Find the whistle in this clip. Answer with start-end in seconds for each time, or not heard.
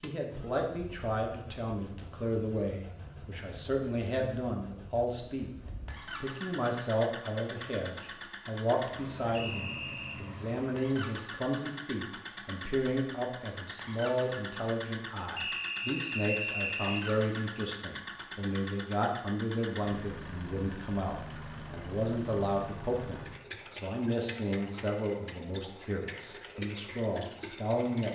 9.3-10.2, 15.3-17.1.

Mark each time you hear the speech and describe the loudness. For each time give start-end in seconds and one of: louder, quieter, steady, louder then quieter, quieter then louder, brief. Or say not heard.
0.0-28.1 steady.